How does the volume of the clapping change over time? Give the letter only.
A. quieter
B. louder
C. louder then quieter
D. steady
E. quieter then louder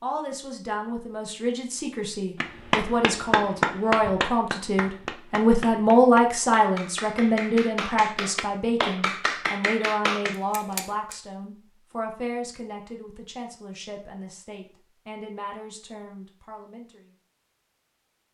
E.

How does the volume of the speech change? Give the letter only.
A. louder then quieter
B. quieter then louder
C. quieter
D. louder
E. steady
A.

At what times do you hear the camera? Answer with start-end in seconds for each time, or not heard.
10.3-11.2.